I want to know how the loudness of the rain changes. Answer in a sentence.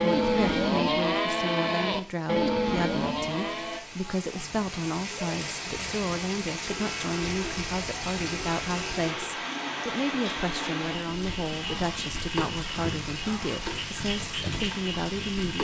The loudness of the rain goes up.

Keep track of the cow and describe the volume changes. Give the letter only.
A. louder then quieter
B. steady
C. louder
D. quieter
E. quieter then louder
D.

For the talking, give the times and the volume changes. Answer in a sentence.
The talking can be heard from 0.2 to 15.5 s, at a steady volume.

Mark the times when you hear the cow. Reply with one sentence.
The cow can be heard from 0.0 to 3.8 s and from 6.7 to 15.5 s.